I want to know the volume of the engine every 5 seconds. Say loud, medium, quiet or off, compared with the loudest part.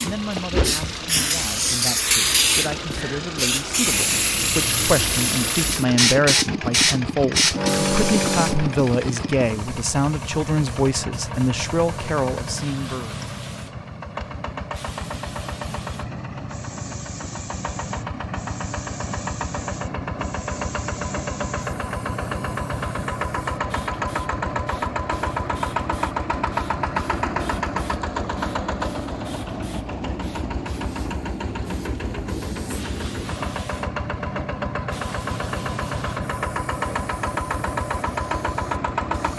loud, loud, medium, medium, loud, loud, loud, loud.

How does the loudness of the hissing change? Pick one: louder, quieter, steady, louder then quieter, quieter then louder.
quieter.